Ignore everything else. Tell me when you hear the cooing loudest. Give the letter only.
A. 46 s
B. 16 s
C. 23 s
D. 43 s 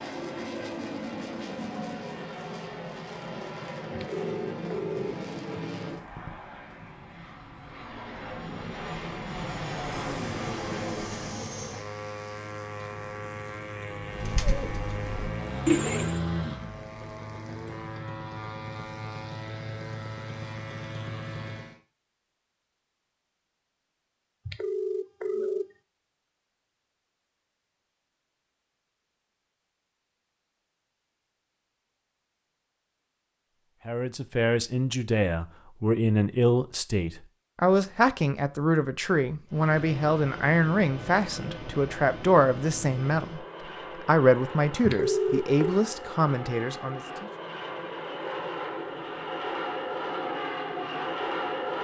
B.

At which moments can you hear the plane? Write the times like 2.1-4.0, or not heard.
0.0-21.8, 39.5-51.8.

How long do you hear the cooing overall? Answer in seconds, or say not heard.
2 s.